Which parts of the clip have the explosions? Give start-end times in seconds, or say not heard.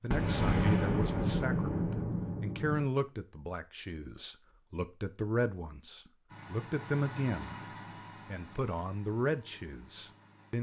0.1-2.9.